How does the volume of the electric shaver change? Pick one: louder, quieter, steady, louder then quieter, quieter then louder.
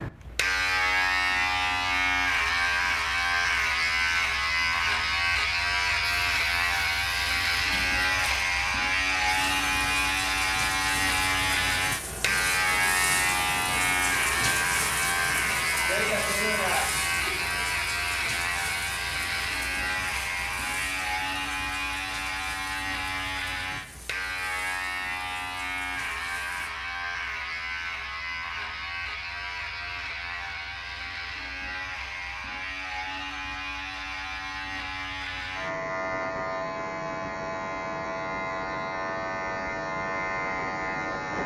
quieter.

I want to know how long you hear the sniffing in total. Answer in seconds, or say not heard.
2 s.